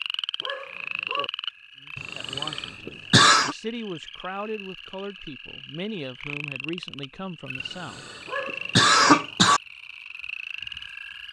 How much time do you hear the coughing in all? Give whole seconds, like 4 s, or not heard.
3 s.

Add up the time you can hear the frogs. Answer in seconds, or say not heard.
11 s.